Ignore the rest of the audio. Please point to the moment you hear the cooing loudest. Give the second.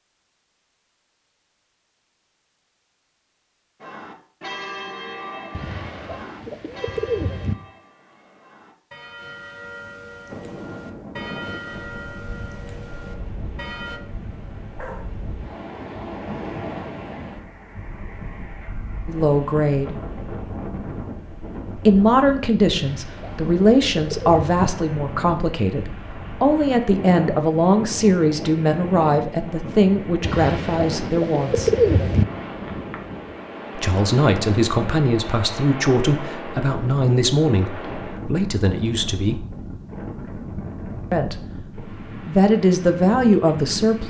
32 s.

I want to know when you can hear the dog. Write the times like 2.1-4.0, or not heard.
14.8-15.2.